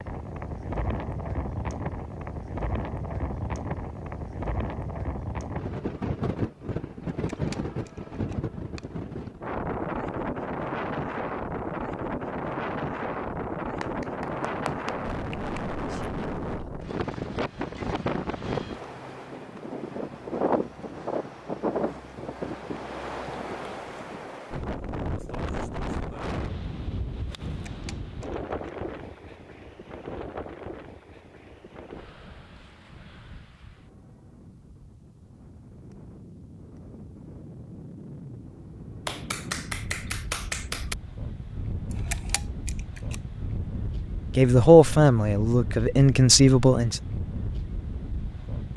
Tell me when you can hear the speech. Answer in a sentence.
The speech can be heard from 44.4 to 47.0 s.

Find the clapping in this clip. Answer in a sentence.
The clapping can be heard from 13.8 to 15.6 s and from 39.0 to 41.0 s.